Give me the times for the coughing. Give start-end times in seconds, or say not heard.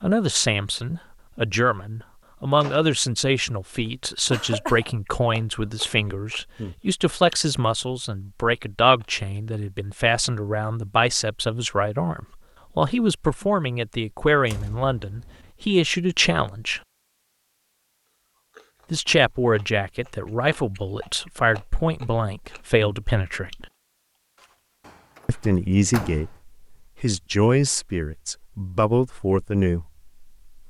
4.3-5.0.